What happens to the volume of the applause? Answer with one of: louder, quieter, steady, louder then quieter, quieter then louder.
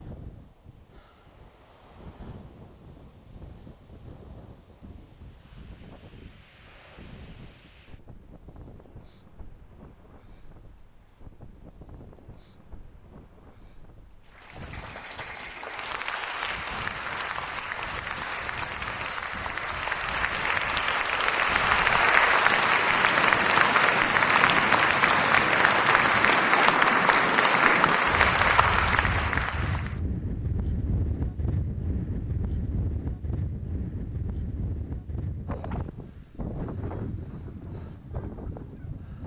louder.